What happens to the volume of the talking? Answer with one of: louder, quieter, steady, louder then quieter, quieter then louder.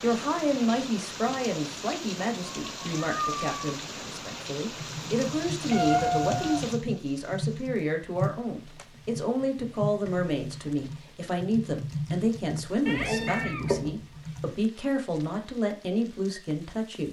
steady.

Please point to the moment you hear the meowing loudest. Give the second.
6 s.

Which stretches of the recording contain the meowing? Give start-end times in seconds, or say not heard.
2.6-3.7, 5.7-6.7, 12.8-13.9.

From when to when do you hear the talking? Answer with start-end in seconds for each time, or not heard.
0.0-17.0.